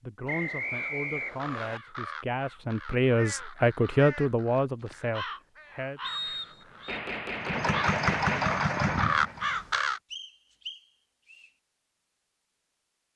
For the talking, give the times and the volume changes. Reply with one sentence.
The talking can be heard from 0.0 to 6.0 s, getting louder then quieter.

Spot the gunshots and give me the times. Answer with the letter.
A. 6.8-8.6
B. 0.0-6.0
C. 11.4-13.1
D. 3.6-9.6
A.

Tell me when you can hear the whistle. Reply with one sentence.
You can hear the whistle from 0.2 to 1.8 s, from 6.0 to 7.0 s and from 10.1 to 11.5 s.